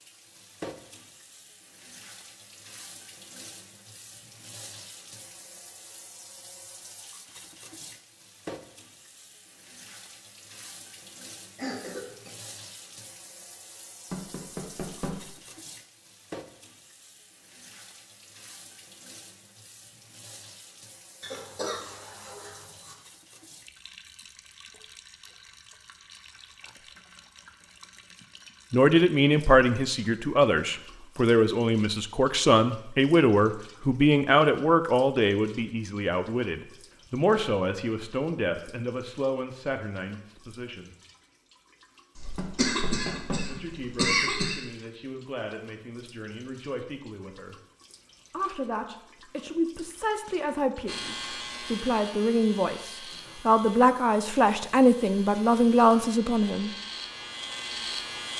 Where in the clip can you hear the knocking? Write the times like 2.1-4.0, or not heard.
14.1-15.2, 42.4-43.5.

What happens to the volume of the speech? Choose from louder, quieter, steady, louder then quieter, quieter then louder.
quieter then louder.